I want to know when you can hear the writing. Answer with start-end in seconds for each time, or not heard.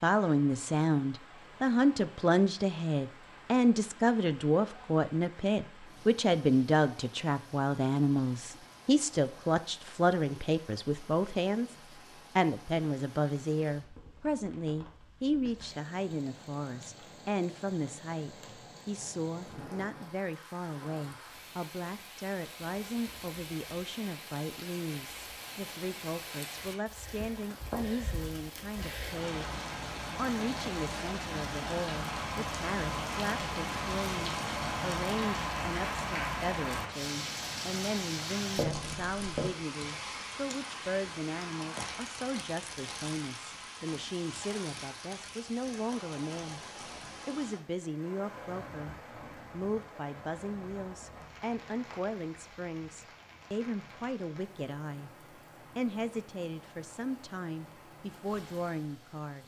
38.5-39.5.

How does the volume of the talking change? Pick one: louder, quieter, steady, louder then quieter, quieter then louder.
quieter.